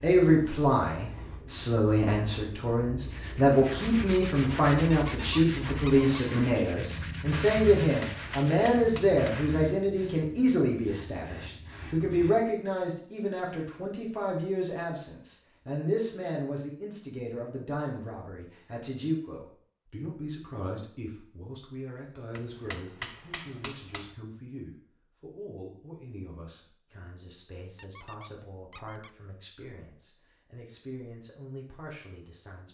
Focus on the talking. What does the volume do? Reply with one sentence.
The loudness of the talking goes down.